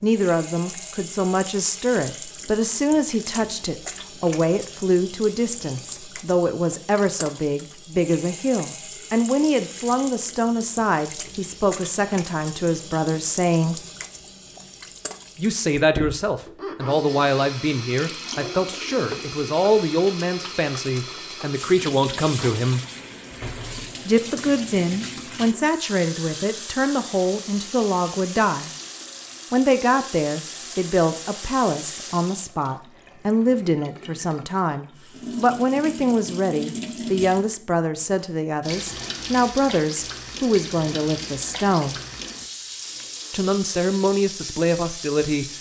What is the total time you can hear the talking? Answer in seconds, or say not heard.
41 s.